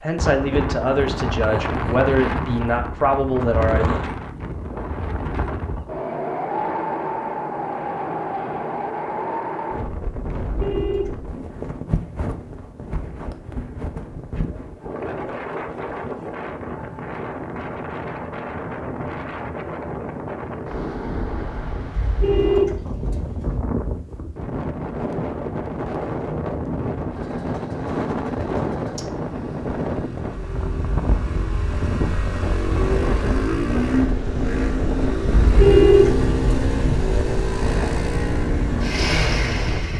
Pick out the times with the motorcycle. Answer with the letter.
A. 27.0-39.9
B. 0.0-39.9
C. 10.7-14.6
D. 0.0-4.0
A.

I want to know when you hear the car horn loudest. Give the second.
36 s.